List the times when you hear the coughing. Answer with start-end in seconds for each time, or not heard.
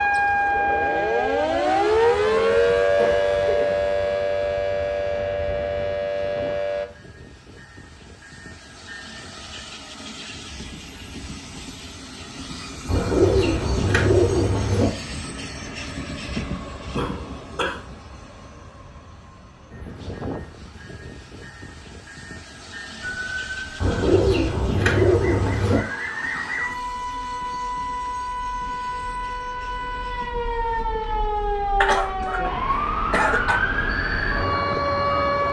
2.2-4.3, 16.9-17.9, 31.8-33.6.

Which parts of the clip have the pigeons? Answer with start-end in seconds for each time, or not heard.
12.8-14.9, 23.8-25.8.